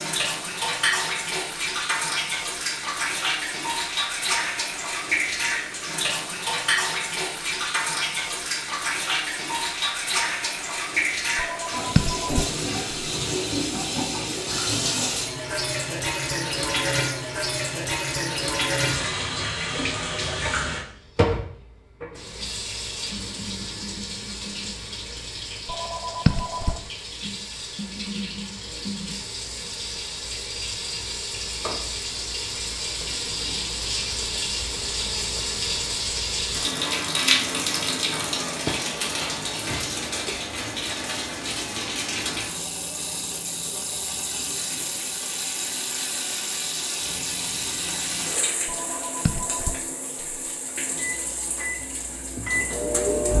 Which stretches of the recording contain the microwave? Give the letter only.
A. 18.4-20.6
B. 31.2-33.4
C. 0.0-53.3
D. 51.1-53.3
D.